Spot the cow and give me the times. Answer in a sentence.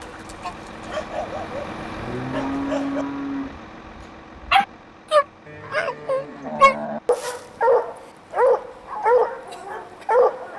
You can hear the cow from 1.9 to 3.5 s and from 5.5 to 7.0 s.